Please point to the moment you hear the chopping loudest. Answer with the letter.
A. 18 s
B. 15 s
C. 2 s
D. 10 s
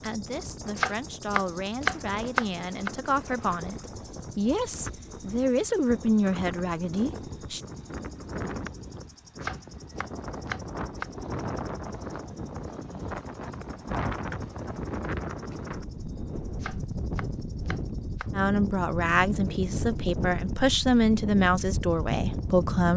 C.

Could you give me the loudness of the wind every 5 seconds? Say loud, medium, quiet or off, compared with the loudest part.
medium, medium, loud, loud, loud.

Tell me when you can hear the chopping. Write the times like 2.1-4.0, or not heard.
0.8-2.9, 9.4-11.1, 16.6-18.3.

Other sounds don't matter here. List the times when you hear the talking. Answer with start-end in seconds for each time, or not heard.
0.0-7.6, 18.3-22.9.